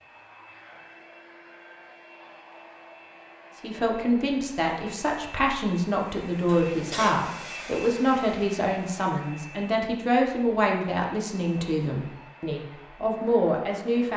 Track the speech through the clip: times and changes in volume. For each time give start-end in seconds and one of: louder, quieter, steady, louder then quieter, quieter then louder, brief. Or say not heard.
3.6-14.1 steady.